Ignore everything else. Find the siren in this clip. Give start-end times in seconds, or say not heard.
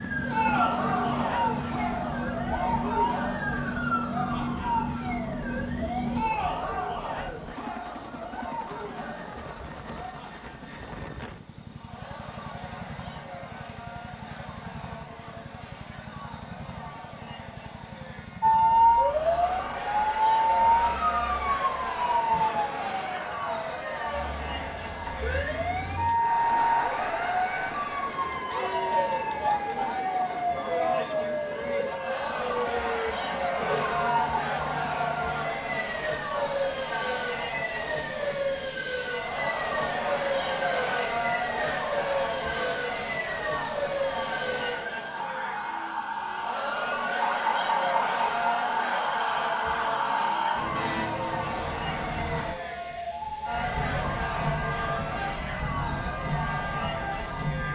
0.0-6.2, 18.4-57.7.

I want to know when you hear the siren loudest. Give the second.
19 s.